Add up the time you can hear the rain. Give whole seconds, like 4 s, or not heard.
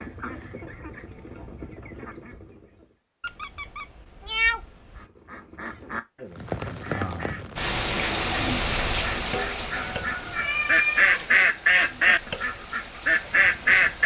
8 s.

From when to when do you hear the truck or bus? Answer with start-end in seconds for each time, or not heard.
not heard.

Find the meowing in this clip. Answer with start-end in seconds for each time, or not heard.
3.2-5.0, 9.7-11.4.